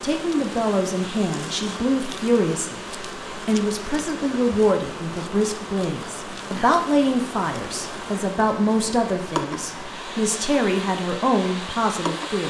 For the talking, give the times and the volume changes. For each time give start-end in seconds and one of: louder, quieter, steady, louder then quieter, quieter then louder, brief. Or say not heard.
0.0-12.4 steady.